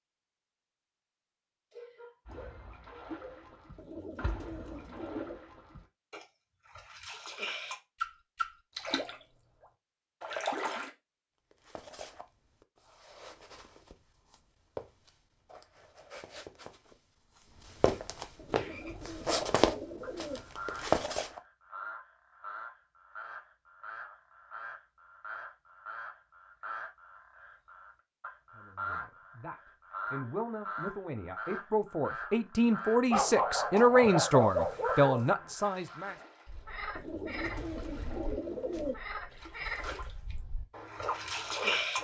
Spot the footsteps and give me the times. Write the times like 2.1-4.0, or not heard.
11.5-21.4.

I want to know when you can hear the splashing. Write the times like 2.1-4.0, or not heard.
2.2-10.9, 33.8-36.8, 37.4-38.6, 39.3-42.0.